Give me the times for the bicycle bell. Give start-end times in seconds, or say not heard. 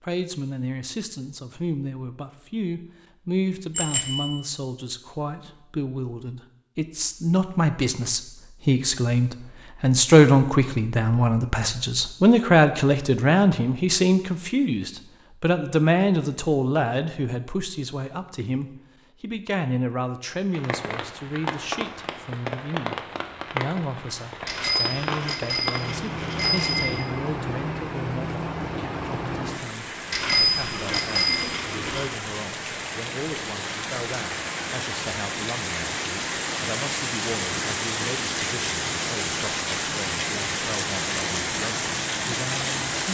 3.8-4.3, 24.4-27.1, 30.1-32.0.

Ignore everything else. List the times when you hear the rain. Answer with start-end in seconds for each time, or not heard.
20.5-43.1.